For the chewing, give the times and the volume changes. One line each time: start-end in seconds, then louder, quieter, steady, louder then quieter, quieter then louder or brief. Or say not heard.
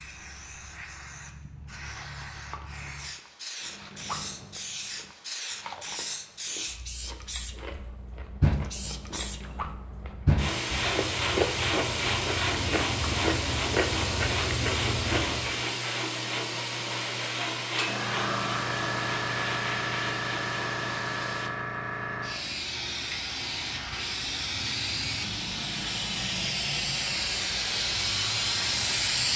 3.6-15.7 quieter then louder.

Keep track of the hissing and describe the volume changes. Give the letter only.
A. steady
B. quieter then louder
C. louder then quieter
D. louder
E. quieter
D.